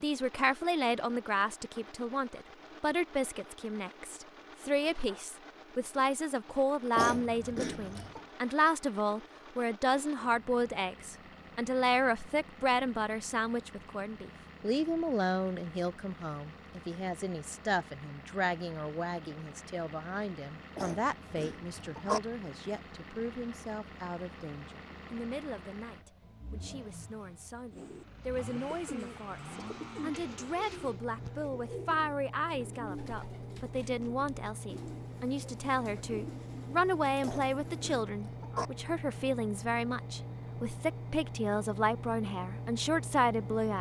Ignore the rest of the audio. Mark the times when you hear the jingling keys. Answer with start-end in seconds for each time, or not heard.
not heard.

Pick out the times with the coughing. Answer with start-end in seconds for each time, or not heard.
7.0-8.2, 20.8-22.2, 37.2-38.7.